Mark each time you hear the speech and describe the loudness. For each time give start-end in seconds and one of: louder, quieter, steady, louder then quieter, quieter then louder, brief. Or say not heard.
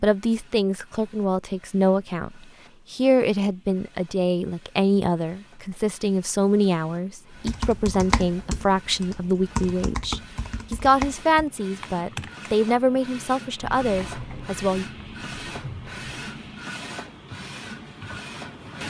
0.0-14.8 steady.